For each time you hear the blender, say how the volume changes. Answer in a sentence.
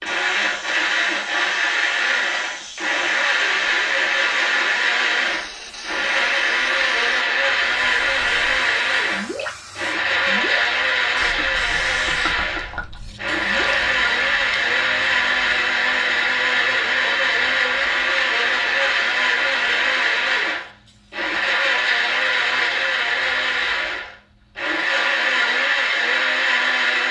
You can hear the blender from 0.0 to 27.0 s, at a steady volume.